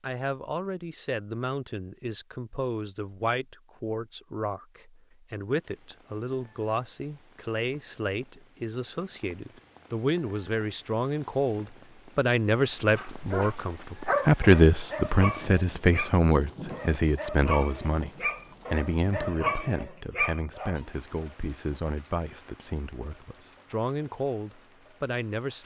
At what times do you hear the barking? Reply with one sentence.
You can hear the barking from 12.6 to 20.8 s.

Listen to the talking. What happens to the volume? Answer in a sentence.
The volume of the talking goes up, then down.